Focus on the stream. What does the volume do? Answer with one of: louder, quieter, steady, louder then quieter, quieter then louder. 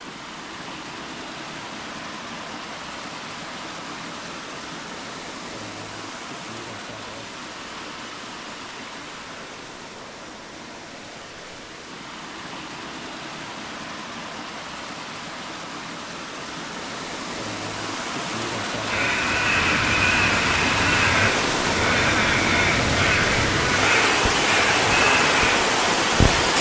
louder.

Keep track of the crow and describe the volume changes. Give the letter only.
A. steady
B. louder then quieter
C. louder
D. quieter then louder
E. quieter
A.